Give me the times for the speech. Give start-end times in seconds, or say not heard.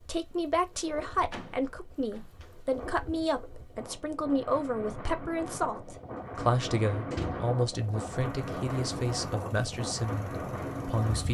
0.0-11.2.